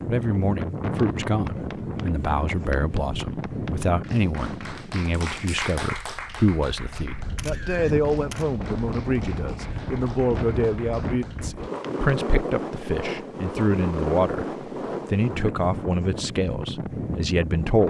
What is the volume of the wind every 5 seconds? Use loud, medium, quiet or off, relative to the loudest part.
loud, medium, loud, loud.